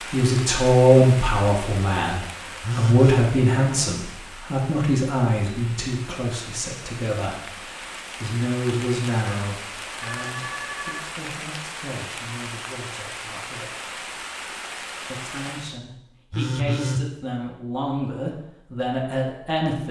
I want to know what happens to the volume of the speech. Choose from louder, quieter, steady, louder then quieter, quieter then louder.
quieter then louder.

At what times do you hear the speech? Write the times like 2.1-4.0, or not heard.
0.0-13.7, 15.1-19.8.